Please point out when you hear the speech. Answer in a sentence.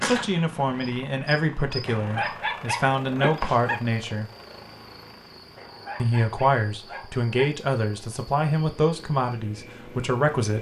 You can hear the speech from 0.0 to 4.2 s and from 6.0 to 10.5 s.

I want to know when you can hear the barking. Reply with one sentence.
You can hear the barking from 1.9 to 3.8 s and from 5.5 to 7.3 s.